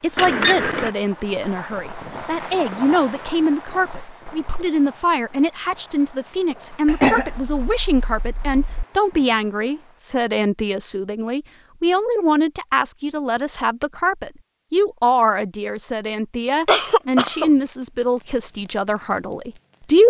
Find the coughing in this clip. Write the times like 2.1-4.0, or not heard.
0.1-0.9, 6.8-8.8, 16.6-17.5.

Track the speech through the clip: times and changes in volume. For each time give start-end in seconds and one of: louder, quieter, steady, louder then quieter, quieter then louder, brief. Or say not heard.
0.0-20.0 steady.